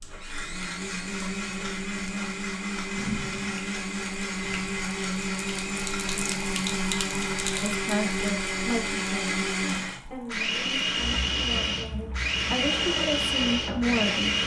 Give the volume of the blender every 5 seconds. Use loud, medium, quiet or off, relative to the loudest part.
medium, loud, loud.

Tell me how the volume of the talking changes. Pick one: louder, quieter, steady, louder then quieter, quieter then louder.
quieter then louder.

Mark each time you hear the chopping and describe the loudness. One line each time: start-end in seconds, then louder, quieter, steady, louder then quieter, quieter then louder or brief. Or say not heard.
not heard.